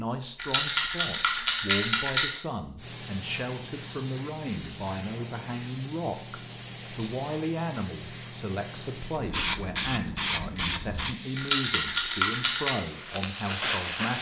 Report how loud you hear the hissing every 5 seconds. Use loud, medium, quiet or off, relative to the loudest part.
medium, loud, loud.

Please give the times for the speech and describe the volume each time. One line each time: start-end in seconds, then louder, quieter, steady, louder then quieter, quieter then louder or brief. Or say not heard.
0.0-14.1 steady.